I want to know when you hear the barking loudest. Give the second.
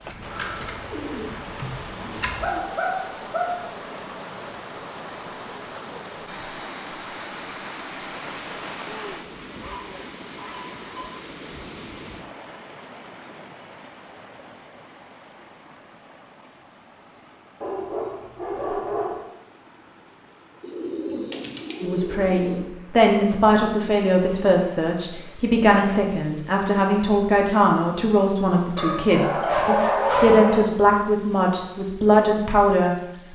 30 s.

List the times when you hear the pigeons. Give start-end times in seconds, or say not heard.
0.0-2.6, 20.6-22.6.